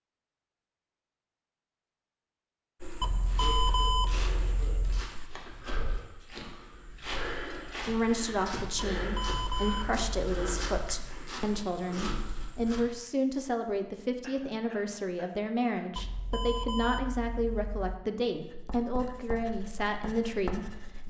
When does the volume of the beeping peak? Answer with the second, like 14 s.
4 s.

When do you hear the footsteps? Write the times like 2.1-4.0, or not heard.
2.8-12.8.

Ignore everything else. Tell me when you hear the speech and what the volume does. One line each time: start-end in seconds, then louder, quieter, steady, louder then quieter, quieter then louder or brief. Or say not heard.
7.8-21.0 steady.